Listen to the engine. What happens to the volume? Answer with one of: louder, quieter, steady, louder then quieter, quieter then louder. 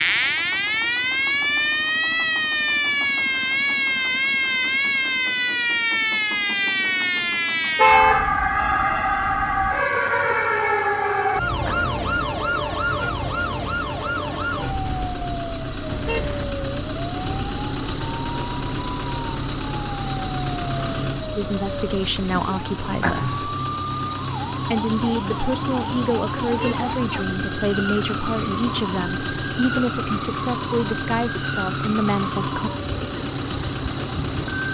louder.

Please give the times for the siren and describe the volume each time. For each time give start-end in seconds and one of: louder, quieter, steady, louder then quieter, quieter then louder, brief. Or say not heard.
0.0-34.6 quieter.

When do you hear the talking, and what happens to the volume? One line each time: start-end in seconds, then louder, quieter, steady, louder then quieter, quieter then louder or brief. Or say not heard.
21.4-23.6 brief
24.6-32.7 steady.